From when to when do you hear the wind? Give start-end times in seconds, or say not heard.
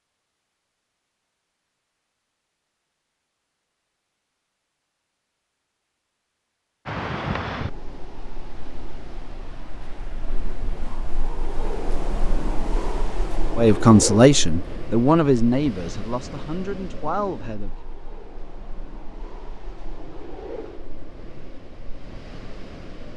6.8-23.1.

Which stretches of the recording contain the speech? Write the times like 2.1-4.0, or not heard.
13.6-17.8.